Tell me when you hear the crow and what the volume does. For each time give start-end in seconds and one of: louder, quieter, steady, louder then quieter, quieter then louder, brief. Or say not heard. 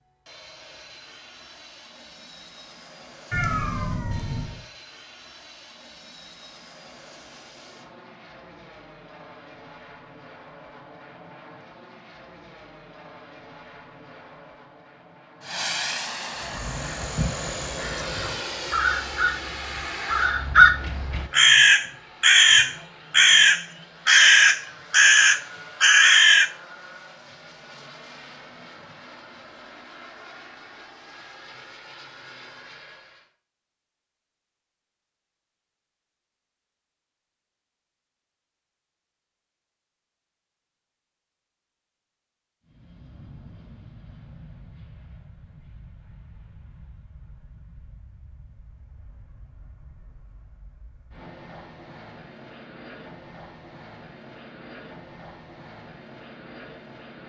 16.4-26.5 louder.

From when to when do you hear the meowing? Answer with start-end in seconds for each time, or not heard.
3.3-4.6.